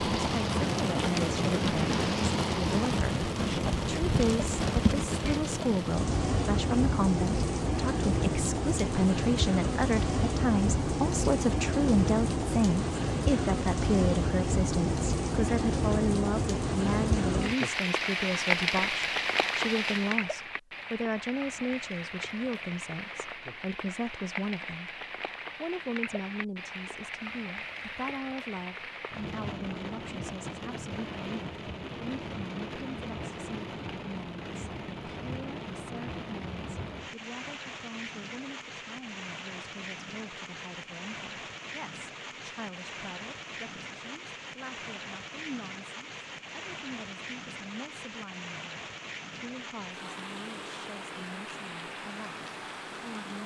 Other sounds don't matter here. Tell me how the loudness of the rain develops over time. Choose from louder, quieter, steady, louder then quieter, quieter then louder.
quieter.